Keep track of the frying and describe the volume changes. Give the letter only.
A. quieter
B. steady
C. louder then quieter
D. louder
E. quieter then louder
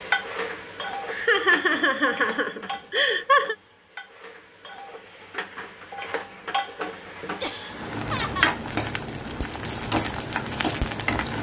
E.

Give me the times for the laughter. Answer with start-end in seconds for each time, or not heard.
1.1-3.5, 7.4-8.6.